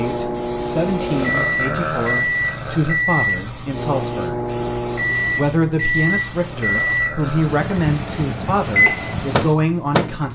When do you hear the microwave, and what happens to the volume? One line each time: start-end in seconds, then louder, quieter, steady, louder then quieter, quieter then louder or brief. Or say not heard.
0.0-10.2 steady.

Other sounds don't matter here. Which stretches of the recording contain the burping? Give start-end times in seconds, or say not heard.
1.0-3.0, 6.4-7.6.